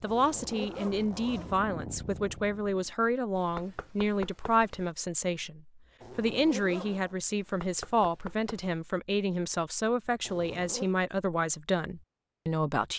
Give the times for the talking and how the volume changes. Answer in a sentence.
You can hear the talking from 0.0 to 12.9 s, at a steady volume.